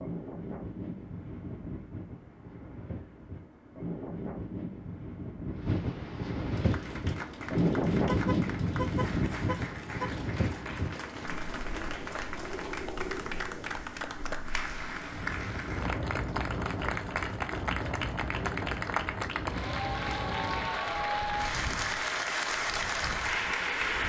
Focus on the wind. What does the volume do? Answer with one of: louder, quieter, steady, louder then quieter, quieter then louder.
louder then quieter.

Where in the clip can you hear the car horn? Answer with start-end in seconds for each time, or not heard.
8.1-10.2.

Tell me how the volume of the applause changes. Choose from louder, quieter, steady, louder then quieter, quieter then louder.
louder.